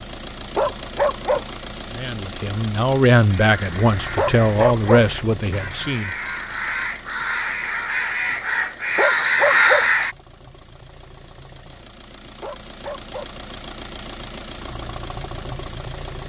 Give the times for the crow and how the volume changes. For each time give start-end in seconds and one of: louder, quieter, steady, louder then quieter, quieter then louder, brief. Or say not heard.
3.4-10.2 louder.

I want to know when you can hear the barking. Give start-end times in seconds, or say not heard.
0.6-1.4, 4.2-5.0, 8.9-9.8, 12.4-13.3.